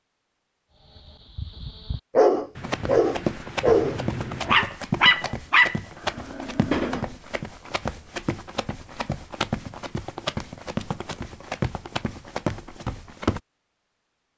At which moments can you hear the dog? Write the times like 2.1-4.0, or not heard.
1.4-7.1.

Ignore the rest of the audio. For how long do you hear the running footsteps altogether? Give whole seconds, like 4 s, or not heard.
11 s.